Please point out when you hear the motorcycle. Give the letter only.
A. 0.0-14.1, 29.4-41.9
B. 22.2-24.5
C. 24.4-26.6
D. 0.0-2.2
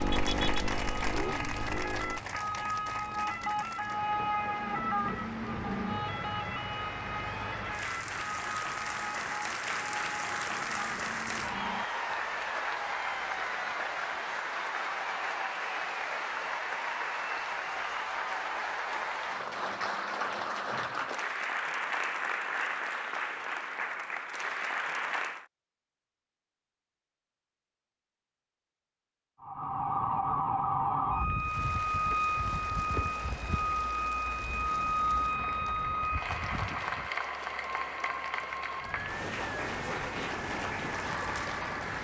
D.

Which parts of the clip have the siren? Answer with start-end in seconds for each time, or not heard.
0.0-14.1, 29.4-41.9.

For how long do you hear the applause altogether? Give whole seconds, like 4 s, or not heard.
36 s.